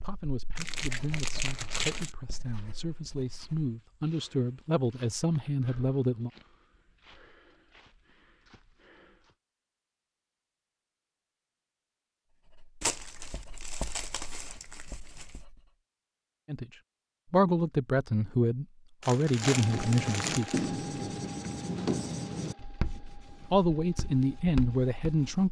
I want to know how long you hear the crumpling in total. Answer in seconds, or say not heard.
6 s.